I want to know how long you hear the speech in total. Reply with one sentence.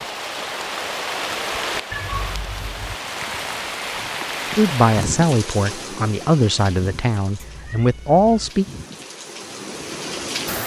The speech can be heard for 4 seconds in total.